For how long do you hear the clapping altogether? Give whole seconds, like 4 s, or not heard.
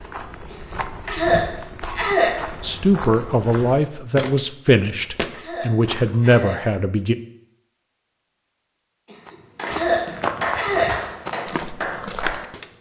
3 s.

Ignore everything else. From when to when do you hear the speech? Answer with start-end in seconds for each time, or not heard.
2.6-7.2.